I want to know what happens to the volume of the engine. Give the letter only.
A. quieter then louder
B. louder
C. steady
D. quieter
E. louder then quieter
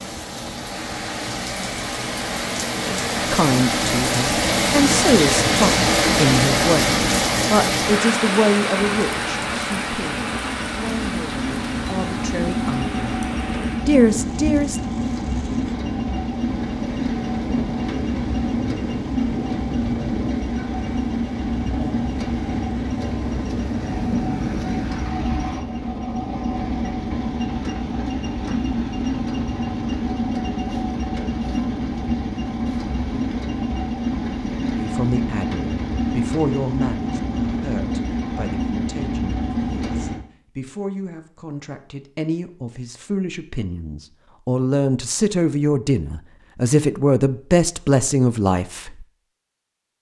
C.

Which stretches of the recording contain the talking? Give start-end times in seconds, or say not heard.
3.3-13.2, 13.8-14.9, 34.7-49.0.